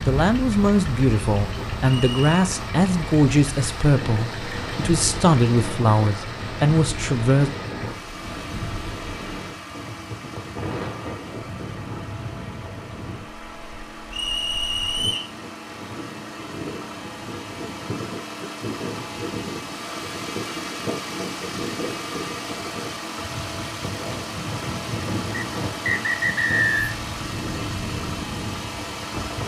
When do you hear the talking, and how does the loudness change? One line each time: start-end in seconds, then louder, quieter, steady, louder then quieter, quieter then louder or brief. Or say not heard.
0.0-7.5 steady.